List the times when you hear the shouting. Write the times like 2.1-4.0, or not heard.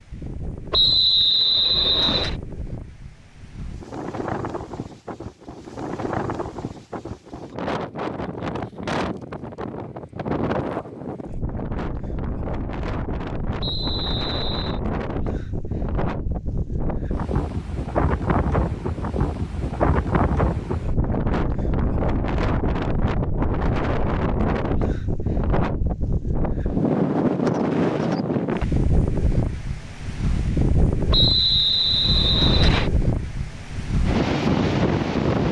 not heard.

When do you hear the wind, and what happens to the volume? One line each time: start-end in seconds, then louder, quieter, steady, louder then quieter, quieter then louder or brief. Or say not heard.
0.0-35.4 louder.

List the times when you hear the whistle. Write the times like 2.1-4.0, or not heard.
0.7-2.4, 13.6-14.8, 31.1-32.9.